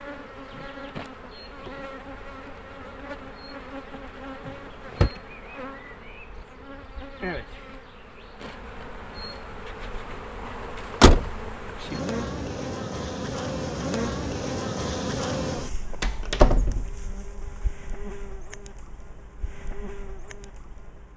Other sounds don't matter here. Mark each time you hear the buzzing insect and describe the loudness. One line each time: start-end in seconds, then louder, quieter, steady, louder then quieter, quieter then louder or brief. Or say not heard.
0.0-21.1 louder then quieter.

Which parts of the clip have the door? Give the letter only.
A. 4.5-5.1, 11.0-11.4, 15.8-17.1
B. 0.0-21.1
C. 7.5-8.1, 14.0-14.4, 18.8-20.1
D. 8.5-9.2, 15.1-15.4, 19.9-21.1
A.